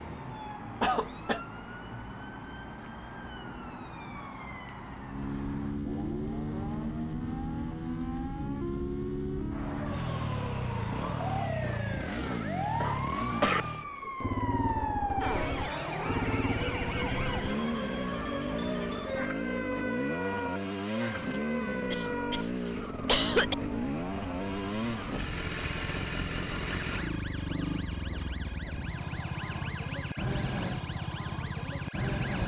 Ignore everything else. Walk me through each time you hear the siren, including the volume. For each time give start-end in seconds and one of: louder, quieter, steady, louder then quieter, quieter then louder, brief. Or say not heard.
0.0-32.4 louder then quieter.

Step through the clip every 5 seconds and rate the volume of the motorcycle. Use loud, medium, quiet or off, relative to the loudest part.
quiet, loud, loud, loud, loud, loud, loud.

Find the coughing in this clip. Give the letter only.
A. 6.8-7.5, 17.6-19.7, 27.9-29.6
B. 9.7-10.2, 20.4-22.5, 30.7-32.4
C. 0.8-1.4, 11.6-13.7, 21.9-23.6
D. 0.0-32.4
C.